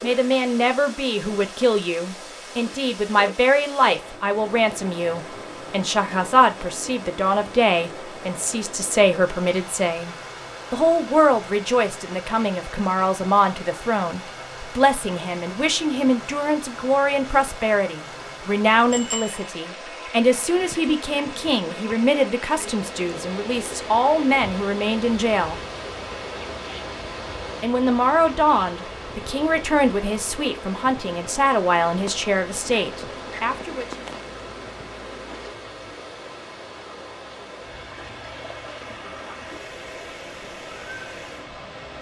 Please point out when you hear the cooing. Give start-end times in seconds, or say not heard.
not heard.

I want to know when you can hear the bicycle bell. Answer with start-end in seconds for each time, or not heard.
18.9-19.5.